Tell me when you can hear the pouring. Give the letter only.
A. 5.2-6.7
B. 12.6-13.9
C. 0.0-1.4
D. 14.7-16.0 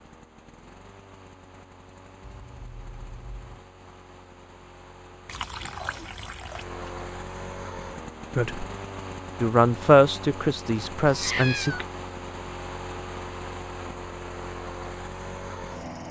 A.